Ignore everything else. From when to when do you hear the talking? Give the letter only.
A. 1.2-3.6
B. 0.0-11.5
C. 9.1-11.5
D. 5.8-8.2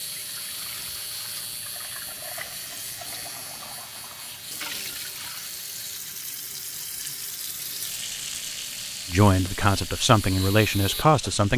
C.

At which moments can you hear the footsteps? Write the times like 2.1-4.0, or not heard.
not heard.